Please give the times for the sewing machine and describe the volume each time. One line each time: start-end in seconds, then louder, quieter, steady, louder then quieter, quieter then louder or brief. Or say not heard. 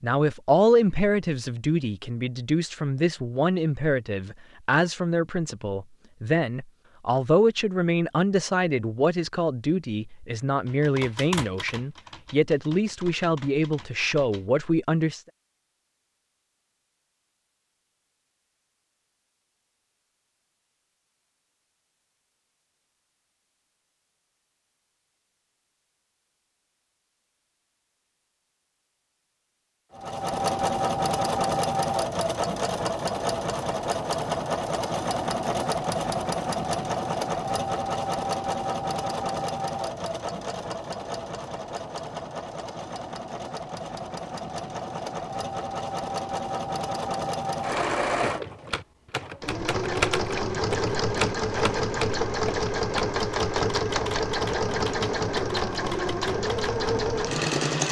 29.9-57.8 quieter then louder.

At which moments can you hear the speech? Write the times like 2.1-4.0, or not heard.
0.0-15.2.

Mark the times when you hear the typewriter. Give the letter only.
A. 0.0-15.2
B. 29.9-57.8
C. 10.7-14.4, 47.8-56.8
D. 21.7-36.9
C.